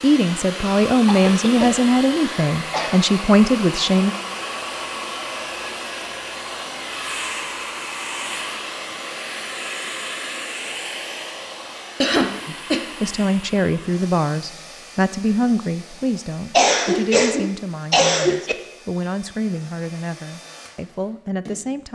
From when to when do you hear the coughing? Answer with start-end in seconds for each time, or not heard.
1.1-3.0, 12.0-12.8, 16.5-18.6.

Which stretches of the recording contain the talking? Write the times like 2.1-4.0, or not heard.
0.0-4.2, 12.4-21.9.